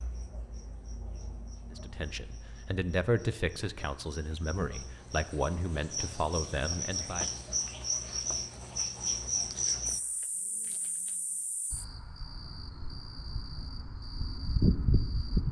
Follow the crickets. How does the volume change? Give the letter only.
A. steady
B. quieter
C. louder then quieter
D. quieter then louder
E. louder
E.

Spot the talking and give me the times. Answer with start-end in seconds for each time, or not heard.
1.7-7.3.